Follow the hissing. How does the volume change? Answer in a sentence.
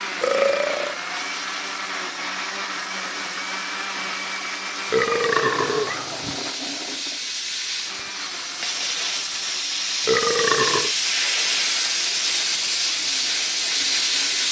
The volume of the hissing goes up.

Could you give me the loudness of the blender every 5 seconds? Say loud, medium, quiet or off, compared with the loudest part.
loud, medium, quiet.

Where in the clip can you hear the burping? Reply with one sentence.
The burping can be heard from 0.2 to 0.9 s, from 4.9 to 6.4 s and from 10.1 to 10.9 s.